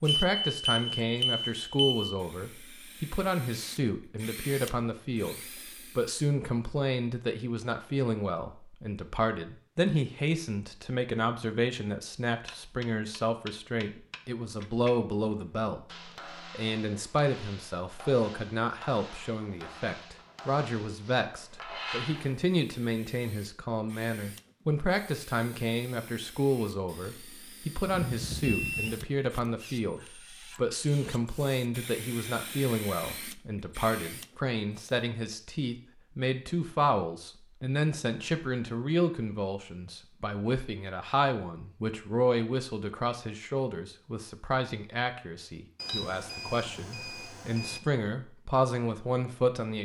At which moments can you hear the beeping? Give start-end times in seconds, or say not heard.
0.1-2.1, 27.9-29.1, 45.8-47.8.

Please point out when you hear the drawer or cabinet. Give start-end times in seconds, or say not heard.
not heard.